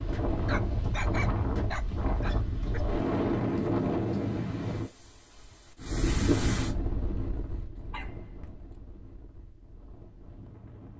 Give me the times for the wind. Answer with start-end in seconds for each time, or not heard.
0.0-10.9.